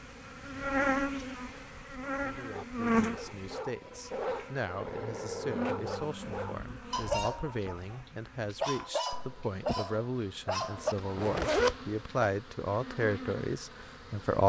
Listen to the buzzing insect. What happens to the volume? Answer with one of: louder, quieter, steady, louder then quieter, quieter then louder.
quieter then louder.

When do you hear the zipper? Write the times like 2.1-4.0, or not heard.
11.2-11.8.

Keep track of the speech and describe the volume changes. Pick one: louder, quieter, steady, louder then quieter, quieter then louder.
louder.